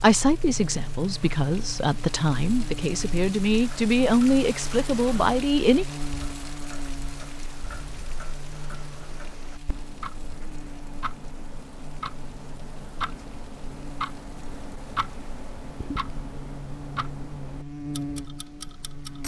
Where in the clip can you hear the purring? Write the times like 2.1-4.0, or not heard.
not heard.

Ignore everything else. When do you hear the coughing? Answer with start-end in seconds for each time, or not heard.
not heard.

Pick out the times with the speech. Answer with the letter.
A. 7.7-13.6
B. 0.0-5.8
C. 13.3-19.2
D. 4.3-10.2
B.